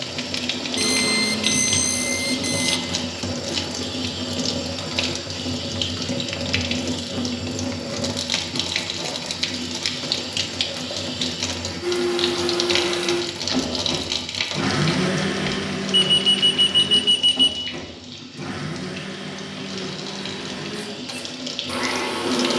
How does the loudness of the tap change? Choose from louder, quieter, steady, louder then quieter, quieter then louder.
quieter.